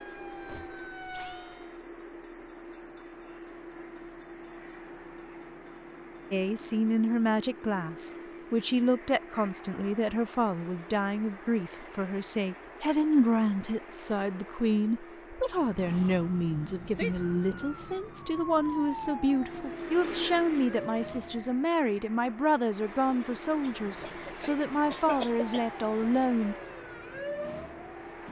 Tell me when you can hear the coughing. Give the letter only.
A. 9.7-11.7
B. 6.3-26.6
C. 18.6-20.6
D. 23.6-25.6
D.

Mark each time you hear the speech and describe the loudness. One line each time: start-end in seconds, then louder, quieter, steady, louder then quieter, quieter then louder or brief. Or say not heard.
6.3-26.6 steady.